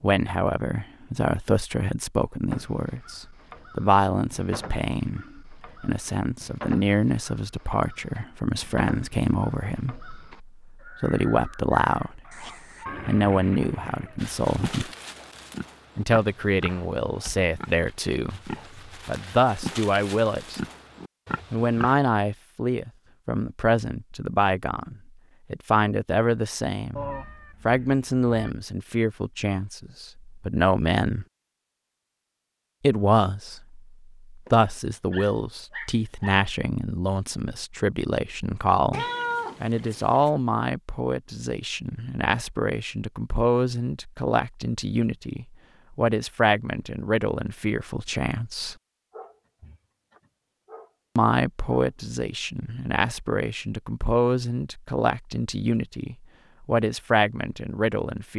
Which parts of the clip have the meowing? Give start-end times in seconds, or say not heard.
12.8-14.2, 26.9-28.5, 38.9-40.3.